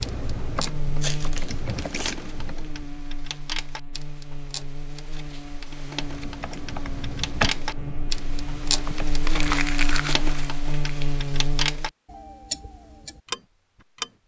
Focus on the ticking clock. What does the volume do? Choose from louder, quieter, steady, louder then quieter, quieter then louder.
louder.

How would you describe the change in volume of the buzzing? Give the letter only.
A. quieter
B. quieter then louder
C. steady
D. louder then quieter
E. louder
B.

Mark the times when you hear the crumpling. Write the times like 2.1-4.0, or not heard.
1.0-2.1, 9.2-11.1.